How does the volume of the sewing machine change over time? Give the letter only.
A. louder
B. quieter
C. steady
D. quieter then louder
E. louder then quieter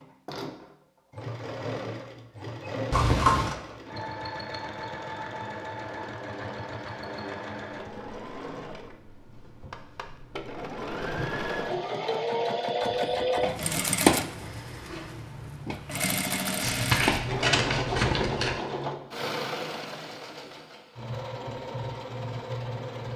E.